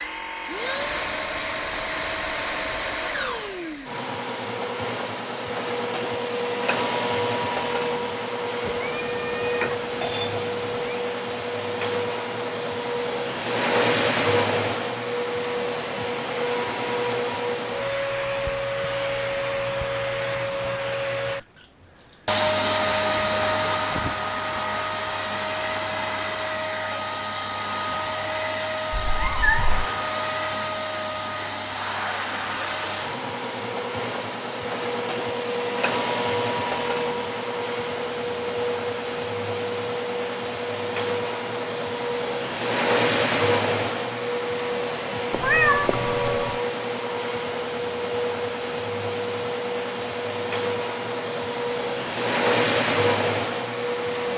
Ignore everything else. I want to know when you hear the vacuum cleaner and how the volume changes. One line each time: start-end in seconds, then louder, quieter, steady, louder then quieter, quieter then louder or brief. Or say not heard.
0.0-54.3 steady.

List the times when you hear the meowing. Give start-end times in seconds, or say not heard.
8.7-11.1, 28.9-29.9, 45.3-46.5.